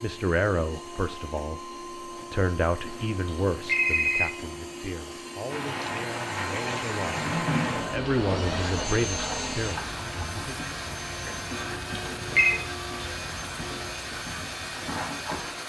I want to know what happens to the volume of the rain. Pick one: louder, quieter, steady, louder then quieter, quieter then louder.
quieter.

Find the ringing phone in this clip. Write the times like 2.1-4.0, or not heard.
2.8-4.3, 11.5-12.6.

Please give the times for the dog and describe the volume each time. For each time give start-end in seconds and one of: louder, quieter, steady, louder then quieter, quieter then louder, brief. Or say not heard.
not heard.